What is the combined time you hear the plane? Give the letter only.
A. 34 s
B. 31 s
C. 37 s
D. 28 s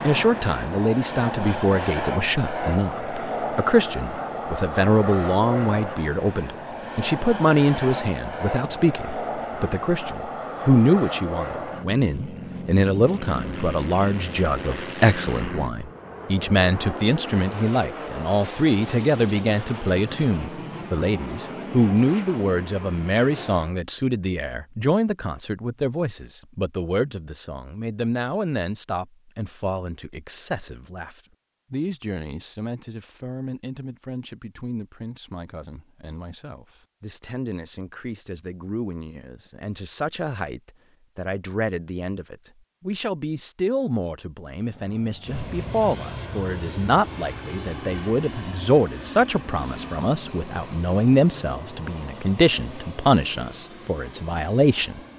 A.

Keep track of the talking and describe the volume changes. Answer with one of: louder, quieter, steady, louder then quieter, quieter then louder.
quieter then louder.